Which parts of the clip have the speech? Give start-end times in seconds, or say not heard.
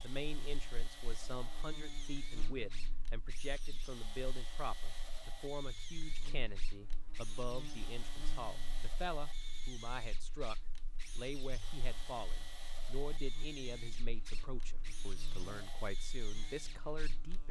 0.0-10.6, 11.2-17.4.